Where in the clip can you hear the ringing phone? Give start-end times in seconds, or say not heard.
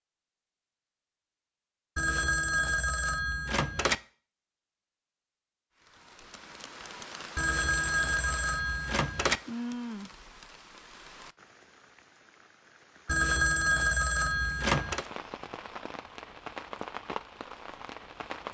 1.9-4.0, 7.3-9.4, 13.1-15.1.